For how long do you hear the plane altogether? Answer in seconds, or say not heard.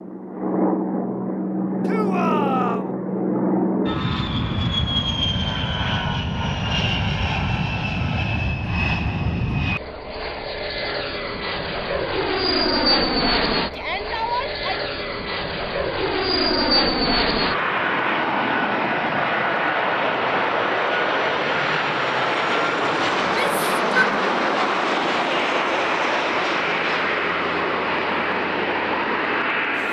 30 s.